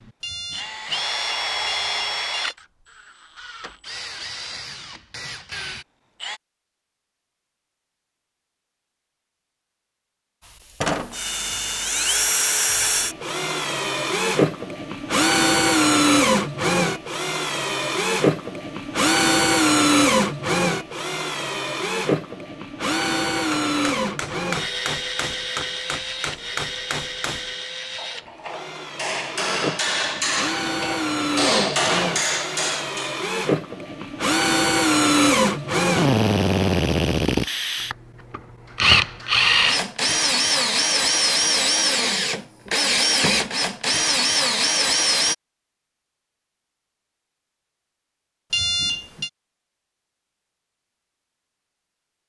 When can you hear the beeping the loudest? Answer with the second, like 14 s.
49 s.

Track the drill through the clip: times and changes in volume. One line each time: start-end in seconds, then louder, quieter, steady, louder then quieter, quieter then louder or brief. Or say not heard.
0.0-6.4 quieter then louder
10.8-45.4 quieter then louder.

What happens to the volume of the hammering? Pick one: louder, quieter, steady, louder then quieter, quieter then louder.
louder.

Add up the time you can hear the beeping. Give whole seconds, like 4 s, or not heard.
3 s.